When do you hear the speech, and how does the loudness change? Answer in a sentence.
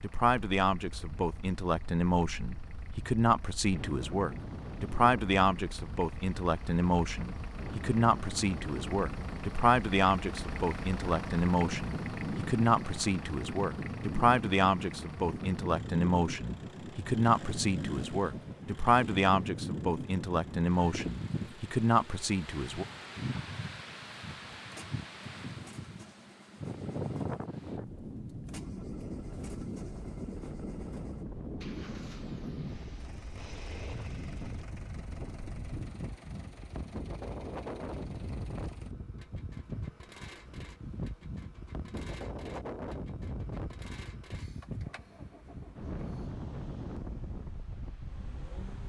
The speech can be heard from 0.0 to 22.9 s, at a steady volume.